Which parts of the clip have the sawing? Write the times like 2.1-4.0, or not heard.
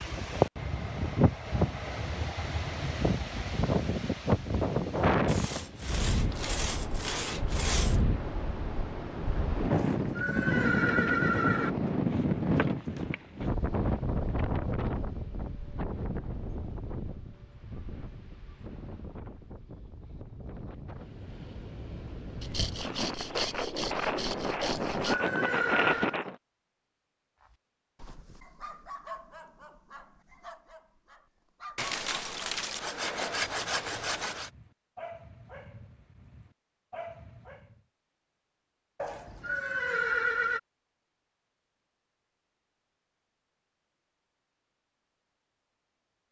5.2-8.0, 22.4-25.1, 31.8-34.5.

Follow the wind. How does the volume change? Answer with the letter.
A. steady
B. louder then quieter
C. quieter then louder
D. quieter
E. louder
C.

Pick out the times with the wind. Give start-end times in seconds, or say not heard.
0.0-26.4.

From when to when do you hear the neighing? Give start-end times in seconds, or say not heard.
9.7-11.7, 24.6-26.1, 39.0-40.6.